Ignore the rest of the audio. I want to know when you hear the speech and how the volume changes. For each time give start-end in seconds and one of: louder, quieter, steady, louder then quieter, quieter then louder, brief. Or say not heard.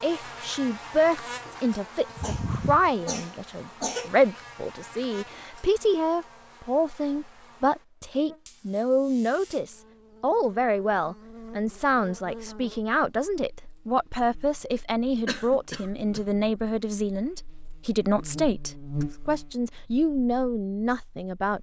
0.0-21.5 steady.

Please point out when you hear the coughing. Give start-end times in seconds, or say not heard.
2.1-4.1, 15.2-16.2.